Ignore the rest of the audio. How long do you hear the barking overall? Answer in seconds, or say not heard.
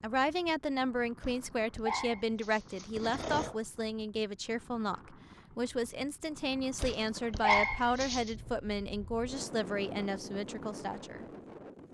4 s.